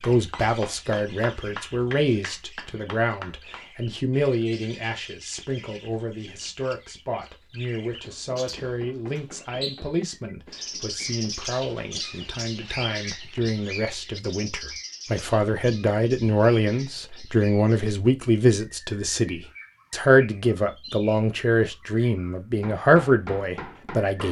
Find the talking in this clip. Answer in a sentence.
You can hear the talking from 0.0 to 24.2 s.